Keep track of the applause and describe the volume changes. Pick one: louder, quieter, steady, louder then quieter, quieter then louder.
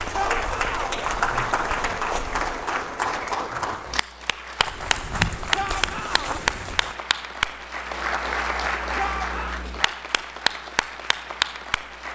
steady.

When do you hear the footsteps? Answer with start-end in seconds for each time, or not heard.
0.0-2.5, 4.6-7.0.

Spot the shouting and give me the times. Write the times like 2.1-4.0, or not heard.
0.1-0.8, 5.5-6.4, 8.9-9.6.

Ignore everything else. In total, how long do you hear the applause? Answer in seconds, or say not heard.
12 s.